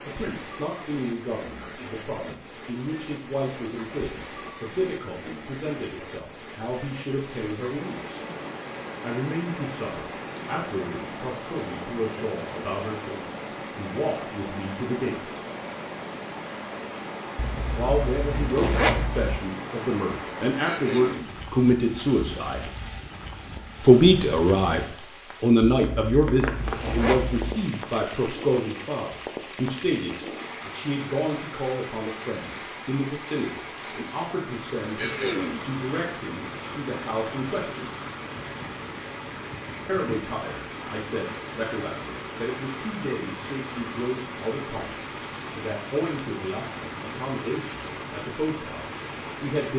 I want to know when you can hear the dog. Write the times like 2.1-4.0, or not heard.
not heard.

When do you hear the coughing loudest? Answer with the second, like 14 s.
35 s.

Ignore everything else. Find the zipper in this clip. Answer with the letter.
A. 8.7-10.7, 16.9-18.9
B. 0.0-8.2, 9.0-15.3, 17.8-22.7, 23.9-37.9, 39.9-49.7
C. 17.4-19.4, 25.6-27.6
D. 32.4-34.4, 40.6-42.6
C.